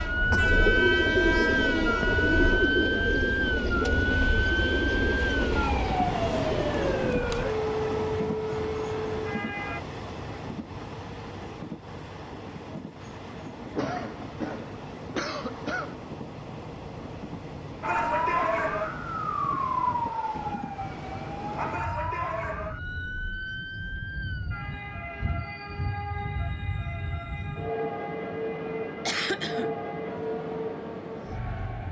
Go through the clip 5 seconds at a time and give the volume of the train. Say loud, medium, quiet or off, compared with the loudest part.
loud, loud, medium, medium, medium, loud, loud.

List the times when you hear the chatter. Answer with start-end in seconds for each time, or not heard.
not heard.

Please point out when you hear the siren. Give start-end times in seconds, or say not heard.
0.0-9.8, 17.8-31.8.